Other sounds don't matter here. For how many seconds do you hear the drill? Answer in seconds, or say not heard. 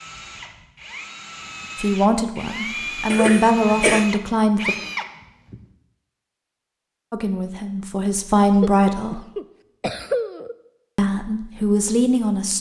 6 s.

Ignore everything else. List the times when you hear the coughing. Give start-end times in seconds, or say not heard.
3.1-4.0, 8.6-10.6.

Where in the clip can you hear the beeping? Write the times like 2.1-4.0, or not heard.
not heard.